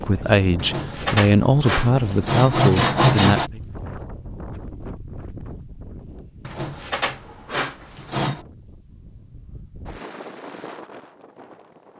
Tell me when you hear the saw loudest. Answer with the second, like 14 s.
3 s.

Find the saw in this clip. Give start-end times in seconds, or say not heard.
0.6-3.5, 6.5-8.4.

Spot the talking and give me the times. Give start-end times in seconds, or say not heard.
0.0-3.6.